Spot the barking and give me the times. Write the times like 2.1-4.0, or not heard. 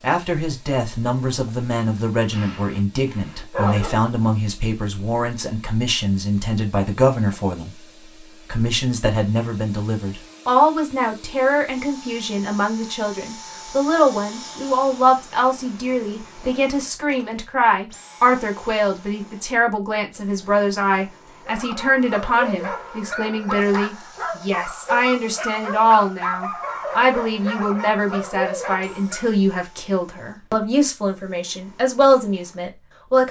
2.3-4.0, 21.4-29.3.